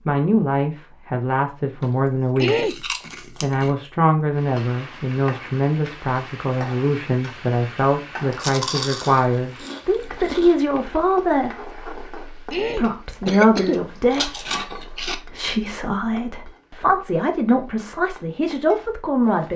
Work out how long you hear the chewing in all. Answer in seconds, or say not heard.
6 s.